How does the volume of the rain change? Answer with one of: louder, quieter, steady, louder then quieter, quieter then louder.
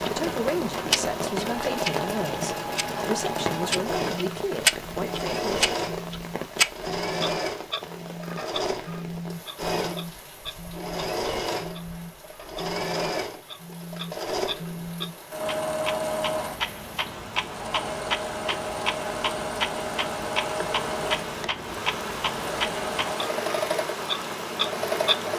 quieter then louder.